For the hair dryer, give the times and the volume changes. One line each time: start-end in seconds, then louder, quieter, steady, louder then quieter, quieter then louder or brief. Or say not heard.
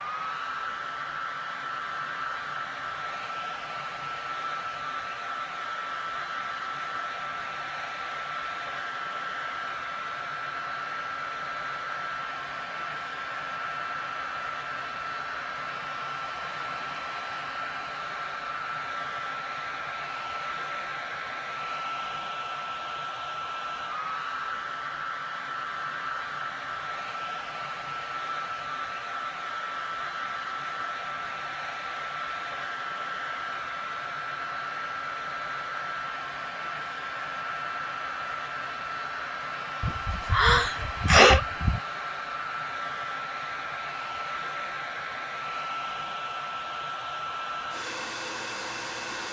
0.0-49.2 steady.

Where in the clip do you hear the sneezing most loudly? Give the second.
41 s.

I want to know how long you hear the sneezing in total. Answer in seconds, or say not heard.
2 s.